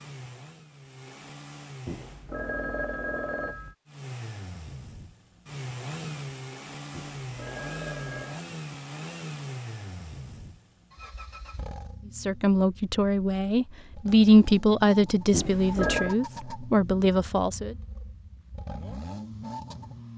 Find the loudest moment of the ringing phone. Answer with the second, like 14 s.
16 s.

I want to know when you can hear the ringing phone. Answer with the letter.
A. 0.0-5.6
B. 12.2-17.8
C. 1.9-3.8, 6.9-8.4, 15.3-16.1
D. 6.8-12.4
C.